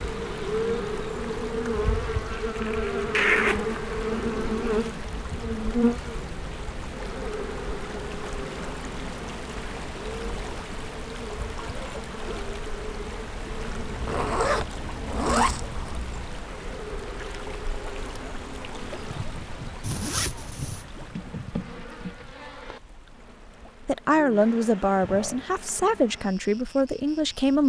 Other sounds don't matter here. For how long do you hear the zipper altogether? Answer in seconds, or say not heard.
5 s.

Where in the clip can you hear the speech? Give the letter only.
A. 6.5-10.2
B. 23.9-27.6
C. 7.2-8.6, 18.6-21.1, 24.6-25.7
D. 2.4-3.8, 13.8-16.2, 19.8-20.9
B.